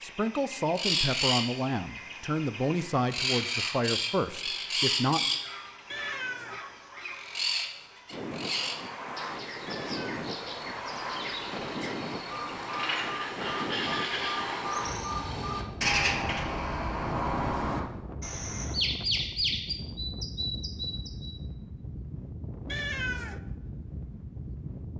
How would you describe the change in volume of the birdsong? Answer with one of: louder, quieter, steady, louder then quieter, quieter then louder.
quieter then louder.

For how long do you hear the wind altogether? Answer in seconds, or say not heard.
17 s.